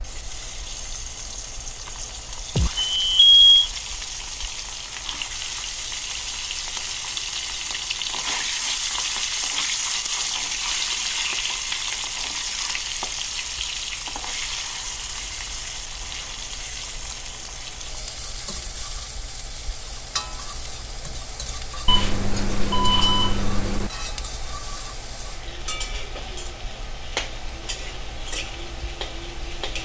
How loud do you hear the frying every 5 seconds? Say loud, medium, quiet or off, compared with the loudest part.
medium, loud, loud, medium, medium, medium.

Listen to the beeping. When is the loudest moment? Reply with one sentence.
The loudest moment of the beeping is at 3 seconds.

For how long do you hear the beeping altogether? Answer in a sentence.
The beeping can be heard for 3 seconds in total.